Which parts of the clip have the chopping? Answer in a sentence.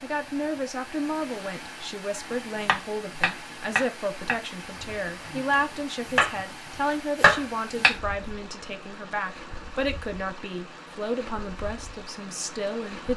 You can hear the chopping from 2.6 to 6.3 s and from 7.2 to 8.0 s.